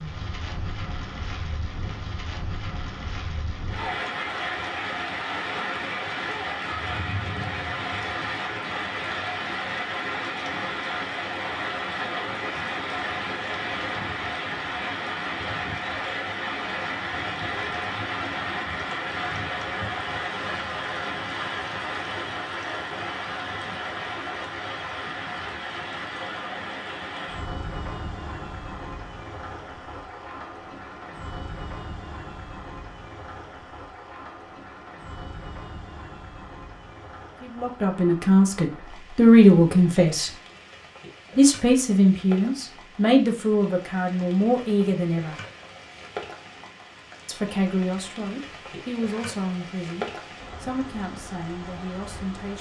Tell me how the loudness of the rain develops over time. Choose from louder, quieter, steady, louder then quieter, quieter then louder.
quieter.